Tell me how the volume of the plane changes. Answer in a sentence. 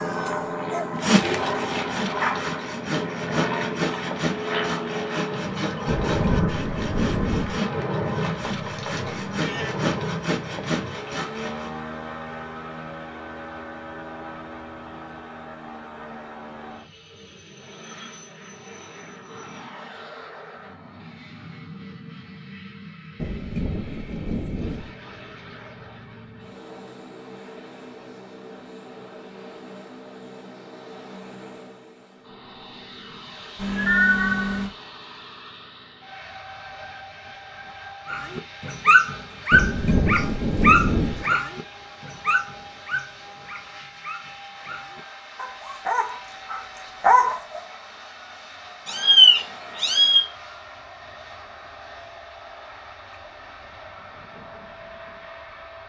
The loudness of the plane goes down.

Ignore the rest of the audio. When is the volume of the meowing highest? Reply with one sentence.
The volume of the meowing peaks at 49 seconds.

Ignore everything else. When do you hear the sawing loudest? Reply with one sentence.
The volume of the sawing peaks at 1 second.